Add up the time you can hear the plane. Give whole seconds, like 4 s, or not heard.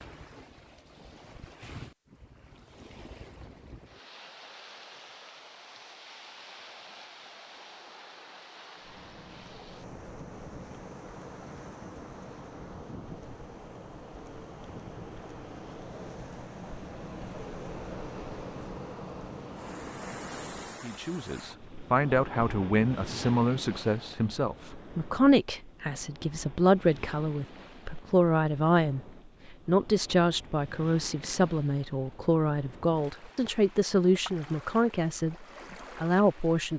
12 s.